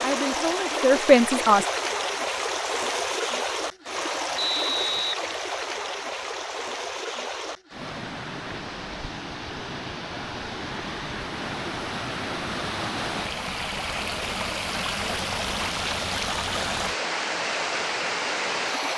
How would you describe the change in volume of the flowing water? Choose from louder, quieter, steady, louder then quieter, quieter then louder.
quieter then louder.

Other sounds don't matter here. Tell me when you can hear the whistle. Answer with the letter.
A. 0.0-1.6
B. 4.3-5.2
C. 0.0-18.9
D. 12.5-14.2
B.